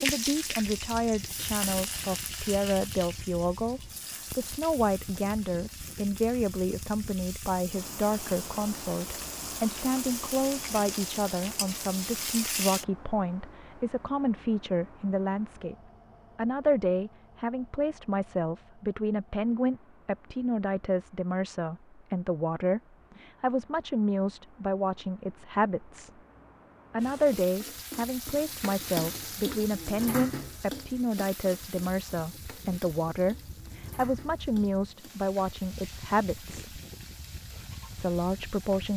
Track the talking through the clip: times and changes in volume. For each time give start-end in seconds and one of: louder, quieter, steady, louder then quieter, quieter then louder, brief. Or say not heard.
0.0-15.8 steady
16.4-26.1 steady
26.9-36.8 steady
38.0-38.9 brief.